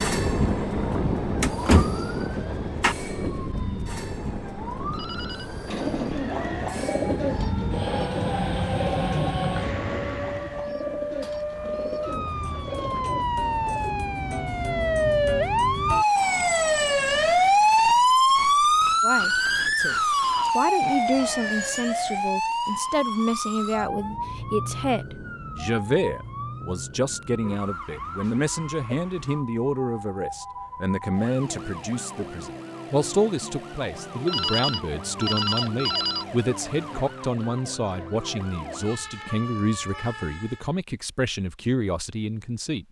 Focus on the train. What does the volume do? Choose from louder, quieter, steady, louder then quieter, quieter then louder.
quieter then louder.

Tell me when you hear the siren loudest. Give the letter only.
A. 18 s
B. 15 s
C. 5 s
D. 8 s
A.